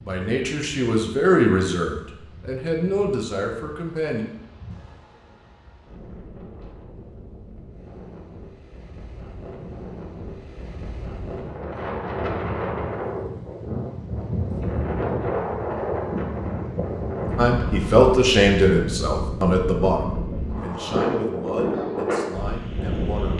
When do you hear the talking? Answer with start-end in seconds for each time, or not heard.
0.0-4.2, 17.4-23.3.